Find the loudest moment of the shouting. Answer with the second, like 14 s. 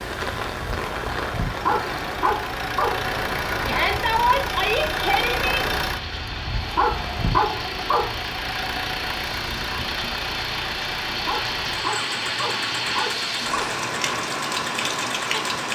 4 s.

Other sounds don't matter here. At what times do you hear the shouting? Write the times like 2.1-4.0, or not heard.
3.6-5.7.